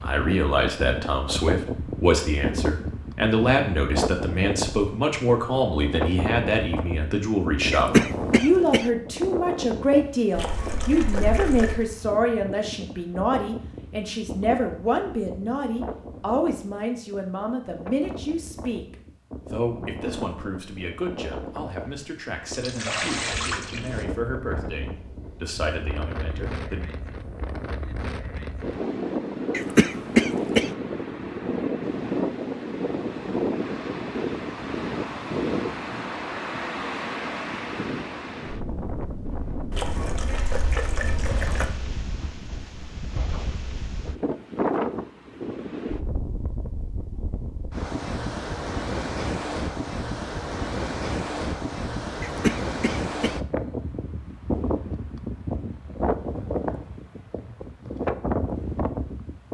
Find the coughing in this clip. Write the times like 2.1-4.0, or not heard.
7.7-8.9, 29.5-30.7, 52.2-53.4.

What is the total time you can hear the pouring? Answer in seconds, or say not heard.
5 s.